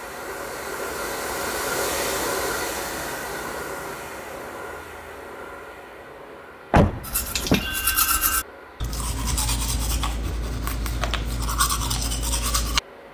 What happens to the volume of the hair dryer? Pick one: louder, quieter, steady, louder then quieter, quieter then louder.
quieter.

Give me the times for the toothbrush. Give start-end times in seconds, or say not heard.
7.0-13.0.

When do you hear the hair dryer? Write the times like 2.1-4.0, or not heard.
0.0-13.0.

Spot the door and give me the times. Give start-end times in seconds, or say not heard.
6.7-7.8.